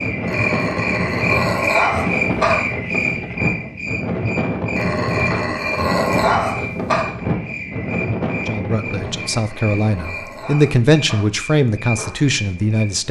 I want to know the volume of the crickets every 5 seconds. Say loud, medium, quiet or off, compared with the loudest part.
loud, medium, medium.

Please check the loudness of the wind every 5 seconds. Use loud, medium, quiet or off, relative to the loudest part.
loud, loud, quiet.